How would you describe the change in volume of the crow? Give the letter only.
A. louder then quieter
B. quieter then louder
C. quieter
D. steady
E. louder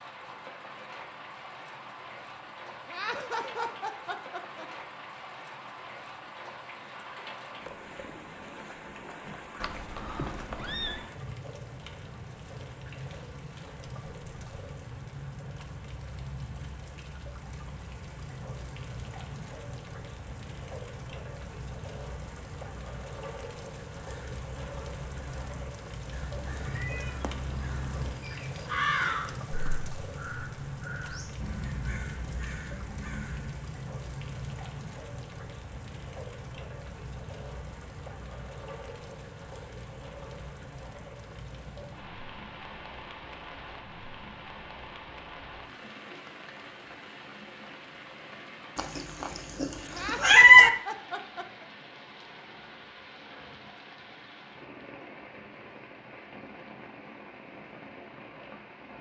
A.